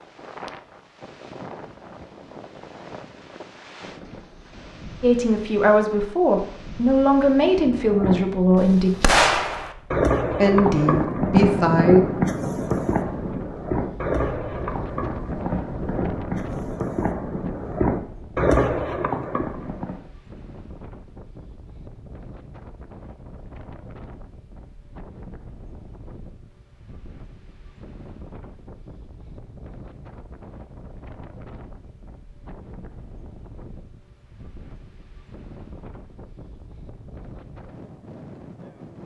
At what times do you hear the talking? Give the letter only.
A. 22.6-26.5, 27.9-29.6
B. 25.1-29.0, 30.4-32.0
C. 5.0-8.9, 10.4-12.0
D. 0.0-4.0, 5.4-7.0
C.